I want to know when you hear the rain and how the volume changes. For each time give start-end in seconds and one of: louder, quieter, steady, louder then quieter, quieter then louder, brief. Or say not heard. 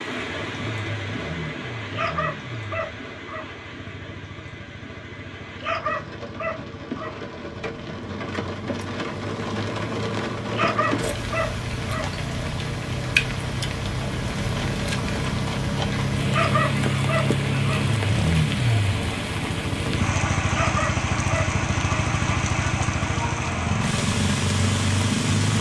0.0-25.5 louder.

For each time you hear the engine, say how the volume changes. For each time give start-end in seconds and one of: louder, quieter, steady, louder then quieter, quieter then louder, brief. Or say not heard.
0.1-25.5 louder.